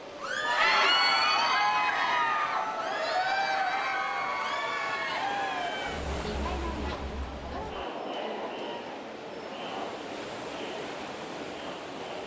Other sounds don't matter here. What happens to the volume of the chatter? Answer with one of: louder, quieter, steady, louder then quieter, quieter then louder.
quieter.